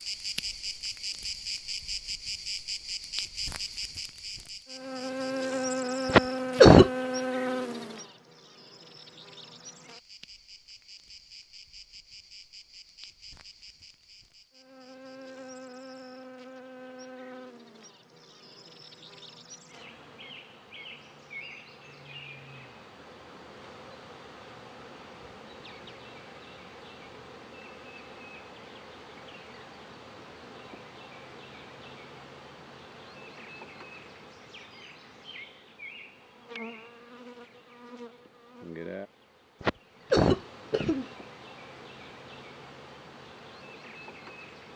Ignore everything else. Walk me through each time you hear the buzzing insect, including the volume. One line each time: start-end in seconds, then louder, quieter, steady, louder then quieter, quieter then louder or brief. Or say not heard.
0.0-44.7 quieter.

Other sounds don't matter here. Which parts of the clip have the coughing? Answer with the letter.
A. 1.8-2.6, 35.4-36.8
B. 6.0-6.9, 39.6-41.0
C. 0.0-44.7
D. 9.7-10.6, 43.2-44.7
B.